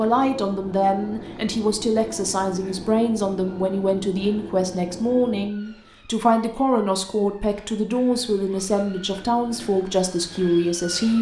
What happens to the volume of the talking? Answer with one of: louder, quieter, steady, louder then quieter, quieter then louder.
steady.